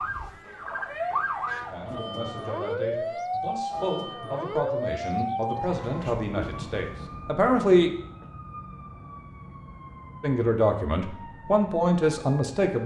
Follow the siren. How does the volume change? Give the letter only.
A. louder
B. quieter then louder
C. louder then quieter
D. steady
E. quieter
E.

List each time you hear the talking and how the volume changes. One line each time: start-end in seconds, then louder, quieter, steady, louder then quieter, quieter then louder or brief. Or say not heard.
1.7-7.9 louder
10.2-12.8 brief.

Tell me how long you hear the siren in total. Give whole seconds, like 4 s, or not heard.
13 s.